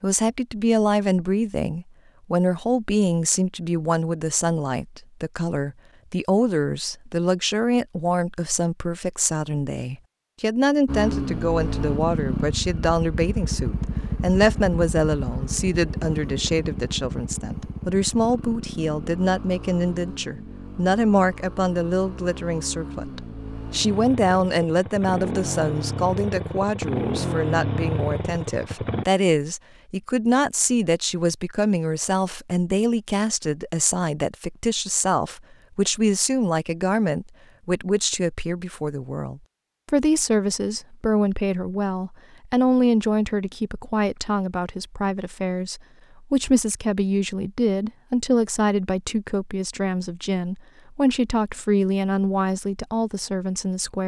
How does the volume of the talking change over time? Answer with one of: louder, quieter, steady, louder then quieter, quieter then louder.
steady.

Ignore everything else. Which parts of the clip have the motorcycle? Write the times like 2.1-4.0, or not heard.
10.8-29.1.